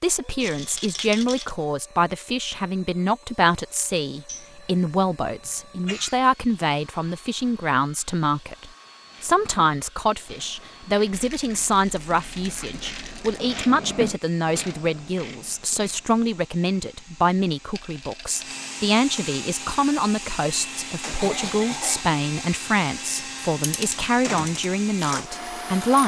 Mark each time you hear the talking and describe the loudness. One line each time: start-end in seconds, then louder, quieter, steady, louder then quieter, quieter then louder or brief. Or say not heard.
0.0-26.0 steady.